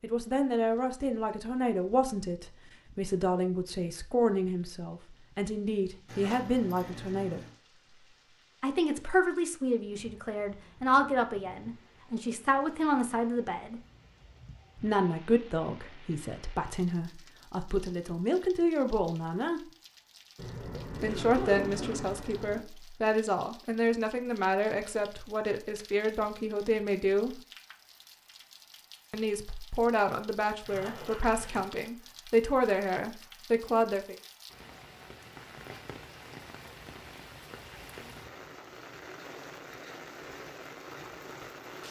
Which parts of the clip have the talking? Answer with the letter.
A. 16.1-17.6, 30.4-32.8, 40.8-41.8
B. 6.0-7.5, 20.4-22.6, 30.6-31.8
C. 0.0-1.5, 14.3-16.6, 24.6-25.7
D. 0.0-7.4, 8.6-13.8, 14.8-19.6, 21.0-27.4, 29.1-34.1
D.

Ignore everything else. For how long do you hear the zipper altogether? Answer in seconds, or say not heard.
5 s.